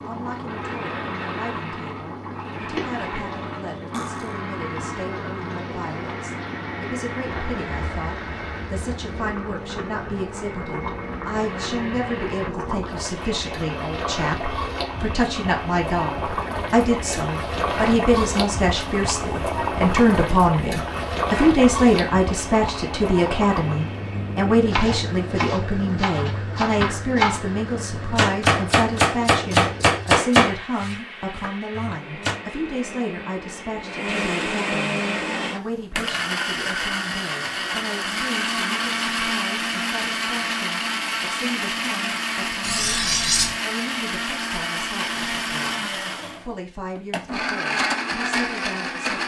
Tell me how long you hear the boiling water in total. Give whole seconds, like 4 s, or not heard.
30 s.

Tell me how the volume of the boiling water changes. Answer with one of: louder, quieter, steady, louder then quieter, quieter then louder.
louder then quieter.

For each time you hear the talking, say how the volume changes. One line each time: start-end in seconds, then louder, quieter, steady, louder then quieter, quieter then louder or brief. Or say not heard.
0.1-49.0 louder then quieter.